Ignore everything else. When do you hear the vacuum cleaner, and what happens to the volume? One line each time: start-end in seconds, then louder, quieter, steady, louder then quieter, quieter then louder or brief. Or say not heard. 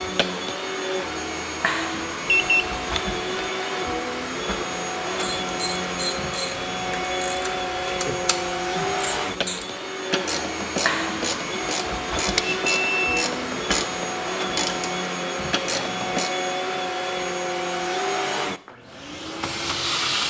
0.0-20.2 steady.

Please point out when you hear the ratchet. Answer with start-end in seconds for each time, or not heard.
5.2-16.4.